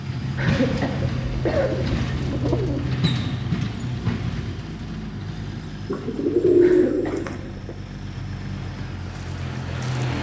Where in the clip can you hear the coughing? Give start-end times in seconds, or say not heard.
0.3-1.7, 6.6-7.8.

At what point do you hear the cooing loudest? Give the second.
7 s.